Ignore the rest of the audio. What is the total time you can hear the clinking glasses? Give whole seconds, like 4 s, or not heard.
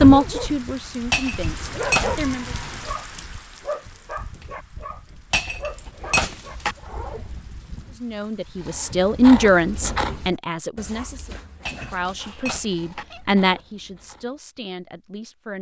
4 s.